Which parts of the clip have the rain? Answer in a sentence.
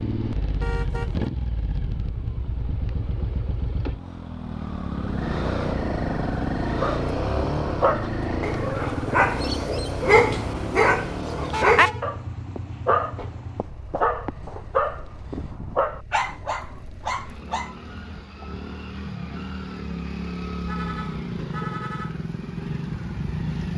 The rain can't be heard in this clip.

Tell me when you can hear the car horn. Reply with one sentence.
You can hear the car horn from 0.6 to 1.2 s, from 11.5 to 12.1 s and from 20.6 to 22.1 s.